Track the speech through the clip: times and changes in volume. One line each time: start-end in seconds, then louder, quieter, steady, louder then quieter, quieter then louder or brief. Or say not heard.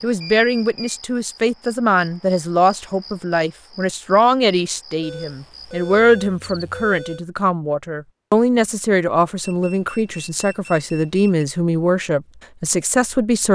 0.0-13.5 steady.